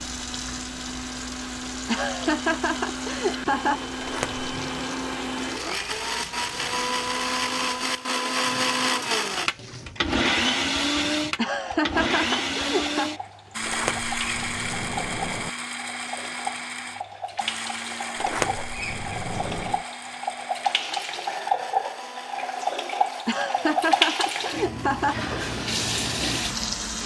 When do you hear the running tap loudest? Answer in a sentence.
The loudest moment of the running tap is at 24 seconds.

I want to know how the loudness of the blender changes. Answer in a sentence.
The loudness of the blender goes up, then down.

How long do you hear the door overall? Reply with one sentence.
You can hear the door for 4 seconds altogether.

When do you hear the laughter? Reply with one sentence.
You can hear the laughter from 1.9 to 3.8 s, from 11.3 to 13.1 s and from 23.2 to 25.1 s.